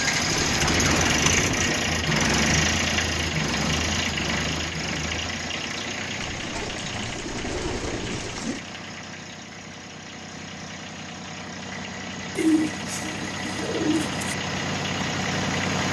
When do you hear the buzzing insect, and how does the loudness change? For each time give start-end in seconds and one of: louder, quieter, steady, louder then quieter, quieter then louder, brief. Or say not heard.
not heard.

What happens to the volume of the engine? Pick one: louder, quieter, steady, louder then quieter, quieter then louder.
quieter then louder.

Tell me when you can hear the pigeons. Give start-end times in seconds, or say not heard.
0.2-1.8, 6.2-8.6, 12.3-14.2.